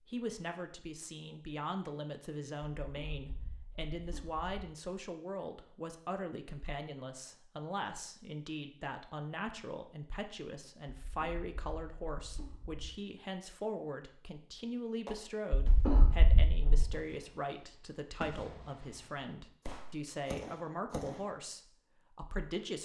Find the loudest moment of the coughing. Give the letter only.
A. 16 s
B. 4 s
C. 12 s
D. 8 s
A.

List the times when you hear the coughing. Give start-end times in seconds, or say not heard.
2.9-4.7, 11.1-12.9, 15.6-16.9.